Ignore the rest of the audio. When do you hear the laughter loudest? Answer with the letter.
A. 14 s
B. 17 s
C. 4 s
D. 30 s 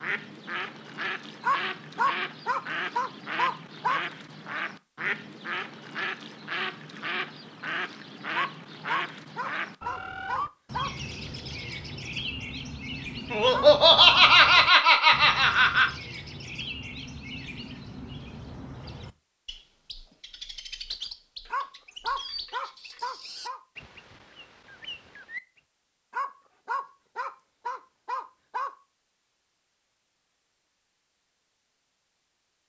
A.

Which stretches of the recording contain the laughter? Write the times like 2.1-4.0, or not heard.
13.3-15.9.